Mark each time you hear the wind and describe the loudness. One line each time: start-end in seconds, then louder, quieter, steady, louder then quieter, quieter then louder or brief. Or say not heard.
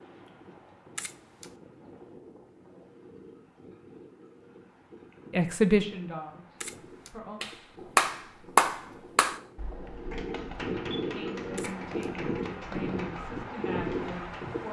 0.0-14.6 louder.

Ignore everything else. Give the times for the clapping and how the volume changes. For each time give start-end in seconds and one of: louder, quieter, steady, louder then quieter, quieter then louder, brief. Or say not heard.
7.4-14.3 quieter.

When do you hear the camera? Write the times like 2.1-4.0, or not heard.
0.9-1.5, 6.6-7.2, 11.6-12.1.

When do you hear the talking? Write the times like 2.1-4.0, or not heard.
5.3-7.4, 11.1-14.6.